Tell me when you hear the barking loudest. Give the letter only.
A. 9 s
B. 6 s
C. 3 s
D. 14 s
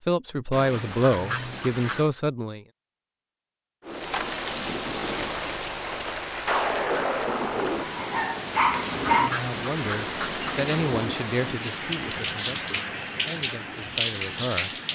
A.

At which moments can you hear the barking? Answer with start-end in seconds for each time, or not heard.
7.8-9.3.